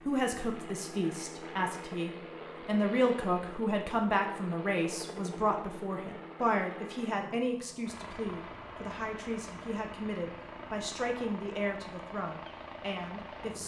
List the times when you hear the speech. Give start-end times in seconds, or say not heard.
0.0-13.6.